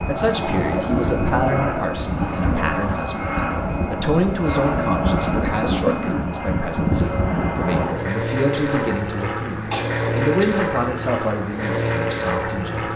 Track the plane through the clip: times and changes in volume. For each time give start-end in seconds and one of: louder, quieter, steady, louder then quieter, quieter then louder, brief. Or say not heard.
0.0-12.9 steady.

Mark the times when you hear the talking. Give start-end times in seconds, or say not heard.
0.1-12.9.